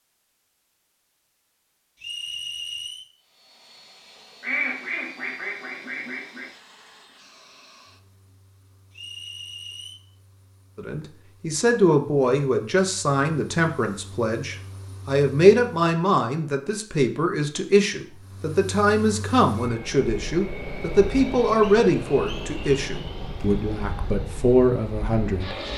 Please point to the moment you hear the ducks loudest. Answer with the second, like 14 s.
5 s.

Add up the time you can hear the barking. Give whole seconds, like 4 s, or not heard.
not heard.